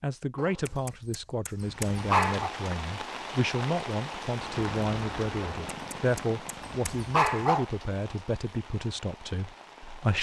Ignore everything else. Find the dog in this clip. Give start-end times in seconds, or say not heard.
0.3-2.5, 5.4-7.7.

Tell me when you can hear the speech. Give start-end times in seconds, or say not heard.
0.0-10.1.